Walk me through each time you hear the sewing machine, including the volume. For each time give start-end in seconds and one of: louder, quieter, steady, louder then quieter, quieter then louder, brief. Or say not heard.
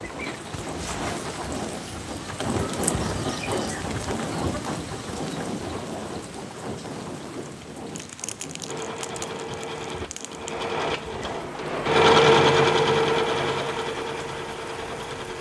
8.7-15.3 louder then quieter.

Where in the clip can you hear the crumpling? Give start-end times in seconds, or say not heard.
8.0-10.6.